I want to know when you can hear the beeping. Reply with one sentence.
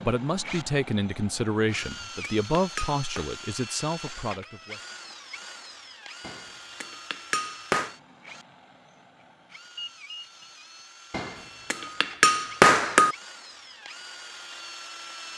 You can hear the beeping from 9.8 to 10.5 s.